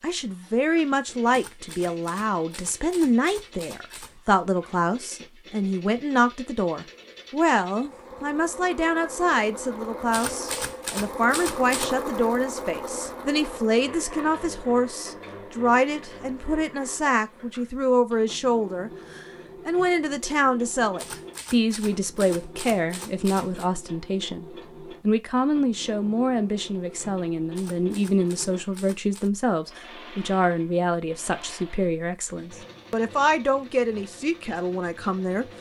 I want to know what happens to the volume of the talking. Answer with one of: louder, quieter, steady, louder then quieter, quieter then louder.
steady.